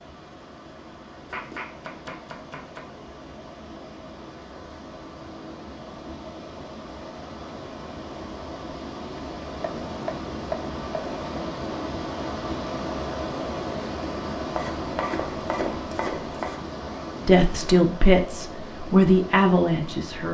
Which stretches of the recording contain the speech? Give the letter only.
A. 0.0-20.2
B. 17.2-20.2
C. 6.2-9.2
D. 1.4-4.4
B.